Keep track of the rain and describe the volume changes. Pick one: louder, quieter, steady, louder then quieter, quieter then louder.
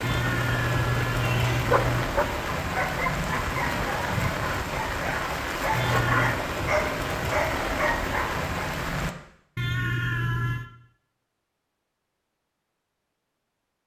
steady.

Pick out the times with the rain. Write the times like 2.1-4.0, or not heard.
0.0-9.2.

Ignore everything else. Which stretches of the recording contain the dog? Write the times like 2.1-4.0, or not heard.
1.7-8.4.